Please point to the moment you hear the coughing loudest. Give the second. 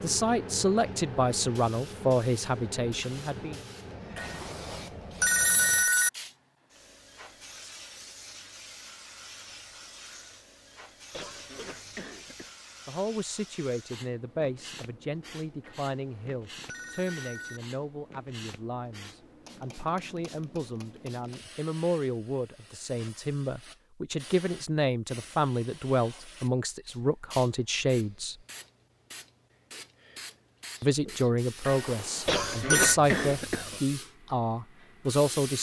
33 s.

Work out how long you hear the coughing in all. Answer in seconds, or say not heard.
3 s.